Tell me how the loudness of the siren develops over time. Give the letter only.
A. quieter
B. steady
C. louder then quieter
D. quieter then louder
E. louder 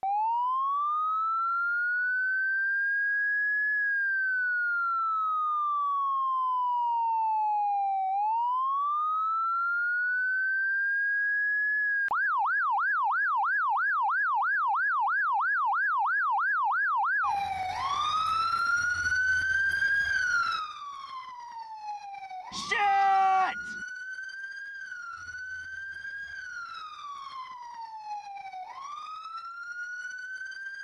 A.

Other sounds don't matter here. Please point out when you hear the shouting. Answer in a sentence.
The shouting can be heard from 22.5 to 23.8 s.